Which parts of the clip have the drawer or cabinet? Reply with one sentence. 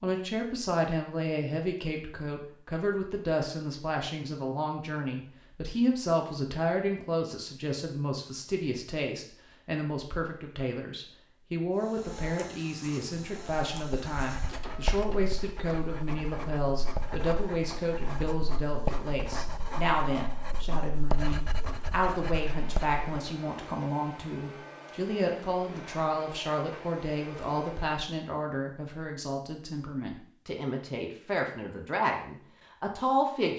The drawer or cabinet can't be heard in this clip.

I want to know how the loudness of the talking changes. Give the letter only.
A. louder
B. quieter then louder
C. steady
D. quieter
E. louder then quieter
C.